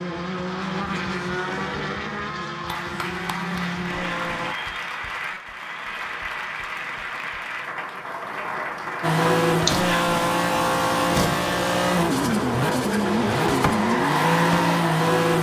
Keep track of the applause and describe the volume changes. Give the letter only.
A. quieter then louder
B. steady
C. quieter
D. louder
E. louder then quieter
B.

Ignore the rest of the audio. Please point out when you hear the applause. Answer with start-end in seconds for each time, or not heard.
2.6-9.2.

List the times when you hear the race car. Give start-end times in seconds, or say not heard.
0.0-4.5, 9.0-15.3.